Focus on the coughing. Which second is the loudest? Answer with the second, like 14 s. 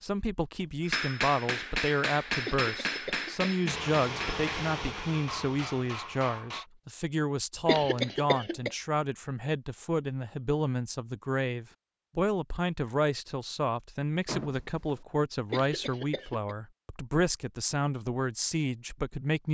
8 s.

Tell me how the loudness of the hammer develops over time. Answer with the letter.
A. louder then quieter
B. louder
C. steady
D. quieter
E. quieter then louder
D.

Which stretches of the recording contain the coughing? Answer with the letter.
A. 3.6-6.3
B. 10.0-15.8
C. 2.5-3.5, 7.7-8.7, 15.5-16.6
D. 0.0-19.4
C.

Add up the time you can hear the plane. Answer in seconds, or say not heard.
3 s.